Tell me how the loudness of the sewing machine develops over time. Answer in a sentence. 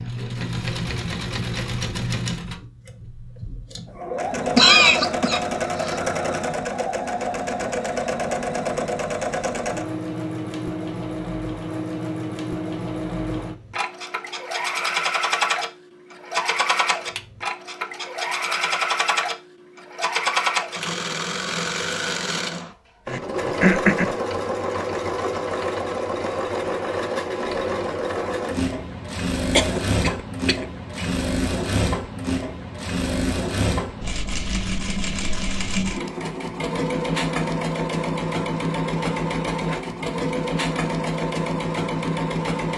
The loudness of the sewing machine stays about the same.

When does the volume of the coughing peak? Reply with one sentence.
The volume of the coughing peaks at 5 seconds.